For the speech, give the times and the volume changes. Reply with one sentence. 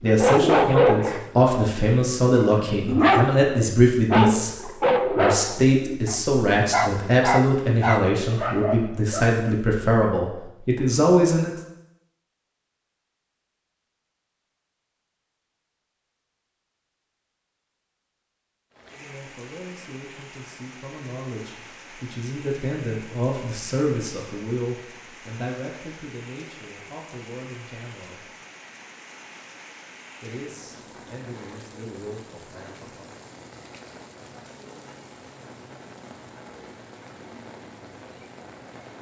You can hear the speech from 0.0 to 11.6 s, at a steady volume; from 18.9 to 28.3 s, getting louder then quieter; and briefly from 30.2 to 33.1 s.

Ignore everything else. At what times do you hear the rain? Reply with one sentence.
You can hear the rain from 18.7 to 38.9 s.